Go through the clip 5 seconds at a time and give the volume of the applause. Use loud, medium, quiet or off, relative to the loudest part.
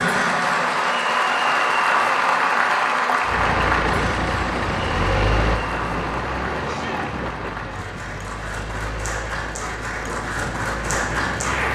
loud, medium, medium.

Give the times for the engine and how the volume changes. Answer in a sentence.
The engine can be heard from 3.2 to 11.7 s, getting quieter.